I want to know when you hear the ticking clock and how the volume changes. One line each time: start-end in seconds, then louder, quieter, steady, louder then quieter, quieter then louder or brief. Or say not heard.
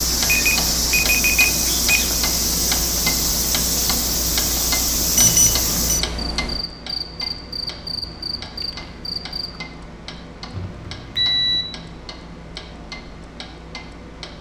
0.0-14.3 quieter.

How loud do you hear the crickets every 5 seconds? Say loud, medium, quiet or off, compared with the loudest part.
loud, medium, off.